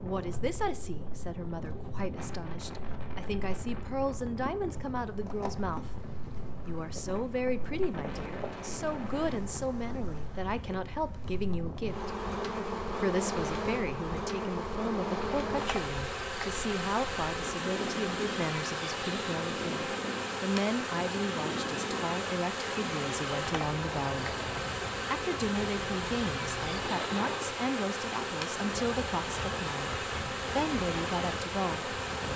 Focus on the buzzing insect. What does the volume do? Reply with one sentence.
The loudness of the buzzing insect goes up.